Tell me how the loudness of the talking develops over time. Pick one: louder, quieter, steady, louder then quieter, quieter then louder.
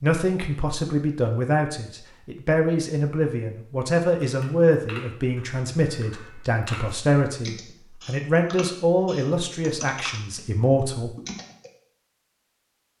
steady.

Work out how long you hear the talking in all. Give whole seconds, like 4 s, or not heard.
11 s.